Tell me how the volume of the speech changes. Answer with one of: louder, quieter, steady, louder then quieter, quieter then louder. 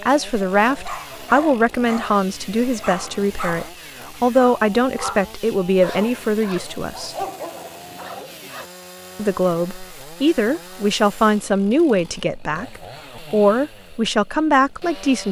steady.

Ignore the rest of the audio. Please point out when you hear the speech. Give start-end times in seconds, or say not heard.
0.0-7.2, 9.2-15.2.